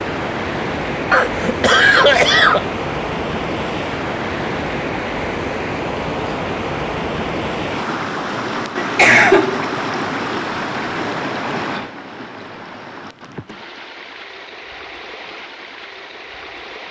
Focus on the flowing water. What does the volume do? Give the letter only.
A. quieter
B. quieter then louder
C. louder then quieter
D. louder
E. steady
A.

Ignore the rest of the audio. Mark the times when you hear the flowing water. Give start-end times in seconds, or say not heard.
0.0-16.8.